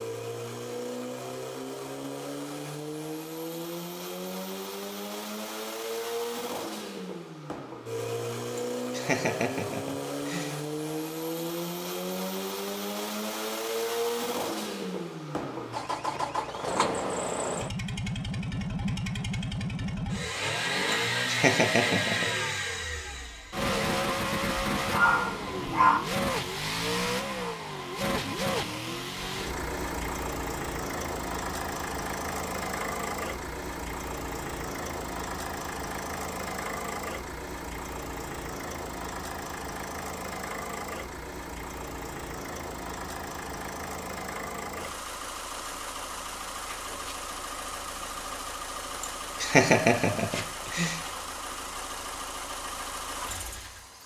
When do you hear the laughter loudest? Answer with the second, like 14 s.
50 s.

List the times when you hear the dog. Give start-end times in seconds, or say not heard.
24.9-26.0.